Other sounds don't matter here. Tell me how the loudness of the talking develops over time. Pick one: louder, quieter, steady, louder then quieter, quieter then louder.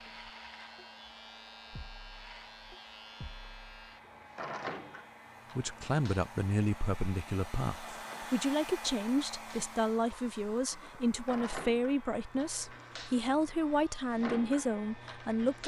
steady.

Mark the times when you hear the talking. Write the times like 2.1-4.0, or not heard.
5.5-15.6.